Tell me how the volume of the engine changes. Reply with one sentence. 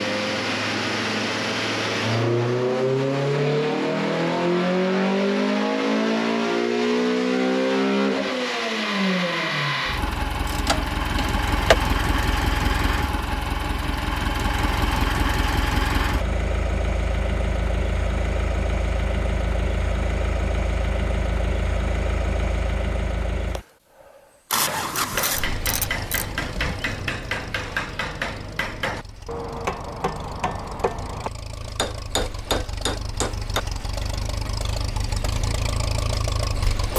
The volume of the engine goes down.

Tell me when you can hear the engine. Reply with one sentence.
You can hear the engine from 0.0 to 36.9 s.